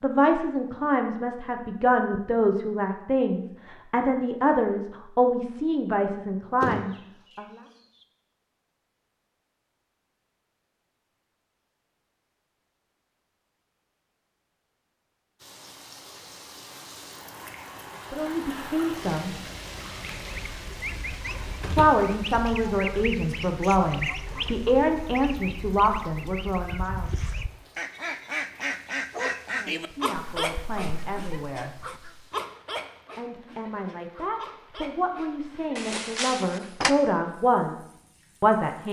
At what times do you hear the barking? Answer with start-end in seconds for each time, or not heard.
29.1-35.8.